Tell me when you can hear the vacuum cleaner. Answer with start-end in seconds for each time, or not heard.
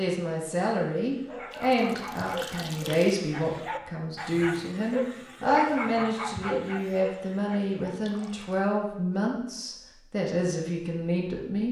not heard.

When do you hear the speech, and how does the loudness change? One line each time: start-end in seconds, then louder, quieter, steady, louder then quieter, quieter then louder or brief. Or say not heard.
0.0-11.6 steady.